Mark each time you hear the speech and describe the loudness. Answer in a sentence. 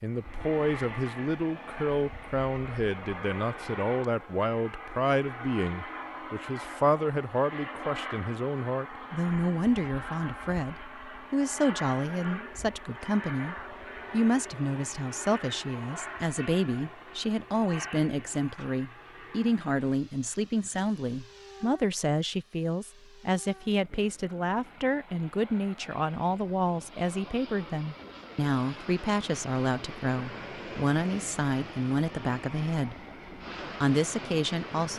You can hear the speech from 0.0 to 33.0 s, at a steady volume; and briefly from 33.8 to 34.9 s.